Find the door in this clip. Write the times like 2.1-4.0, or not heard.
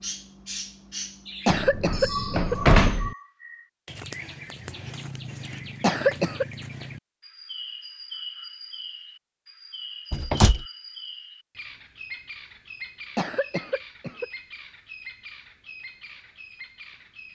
1.4-3.1, 10.1-10.7.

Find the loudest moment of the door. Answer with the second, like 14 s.
3 s.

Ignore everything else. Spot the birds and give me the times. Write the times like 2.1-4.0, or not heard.
0.0-17.2.